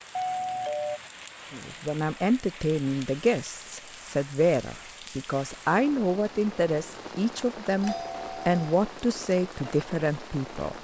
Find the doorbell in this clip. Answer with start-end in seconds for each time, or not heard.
0.1-1.0, 7.8-8.6.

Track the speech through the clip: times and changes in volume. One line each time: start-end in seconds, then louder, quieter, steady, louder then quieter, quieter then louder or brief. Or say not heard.
1.5-10.7 steady.